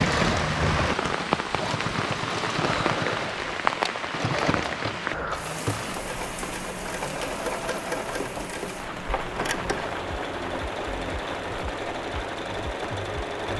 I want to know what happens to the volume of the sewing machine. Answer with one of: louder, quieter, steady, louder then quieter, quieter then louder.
steady.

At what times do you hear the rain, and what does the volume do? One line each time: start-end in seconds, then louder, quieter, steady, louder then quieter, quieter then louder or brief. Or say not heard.
0.0-13.5 quieter.